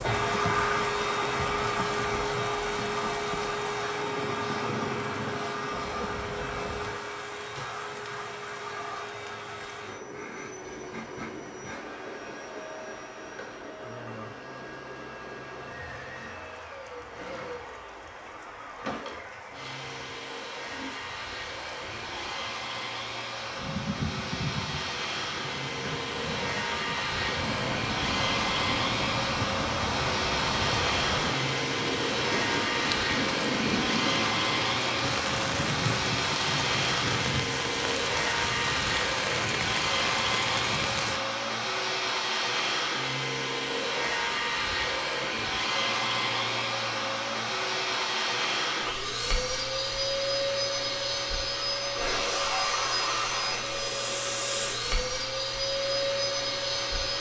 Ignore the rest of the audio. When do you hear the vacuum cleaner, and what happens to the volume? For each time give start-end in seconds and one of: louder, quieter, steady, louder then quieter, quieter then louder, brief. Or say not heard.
0.0-57.1 quieter then louder.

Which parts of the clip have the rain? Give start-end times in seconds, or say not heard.
0.0-41.2.